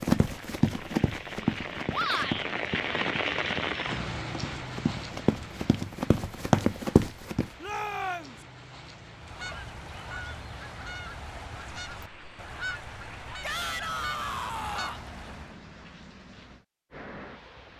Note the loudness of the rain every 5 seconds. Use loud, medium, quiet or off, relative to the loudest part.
loud, quiet, quiet, quiet.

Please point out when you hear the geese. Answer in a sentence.
The geese can be heard from 9.2 to 15.6 s.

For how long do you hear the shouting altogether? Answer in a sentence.
You can hear the shouting for 3 seconds altogether.